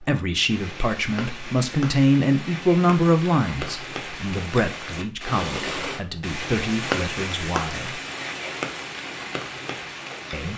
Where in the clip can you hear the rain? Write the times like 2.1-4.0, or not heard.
0.0-10.5.